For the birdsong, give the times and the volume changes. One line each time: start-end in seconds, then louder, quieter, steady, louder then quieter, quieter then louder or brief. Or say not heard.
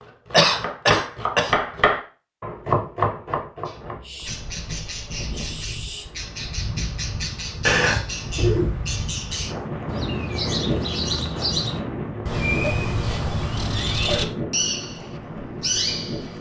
3.6-16.3 louder.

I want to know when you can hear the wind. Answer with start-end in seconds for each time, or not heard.
3.7-16.3.